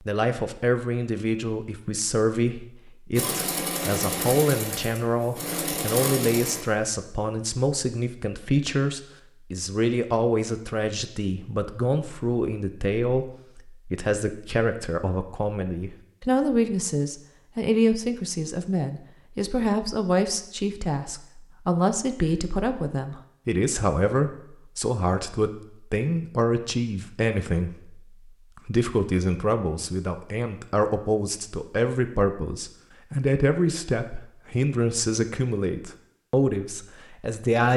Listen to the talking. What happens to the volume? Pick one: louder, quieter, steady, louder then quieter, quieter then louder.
steady.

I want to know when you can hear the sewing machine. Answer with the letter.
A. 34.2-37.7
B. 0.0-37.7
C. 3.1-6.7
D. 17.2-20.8
C.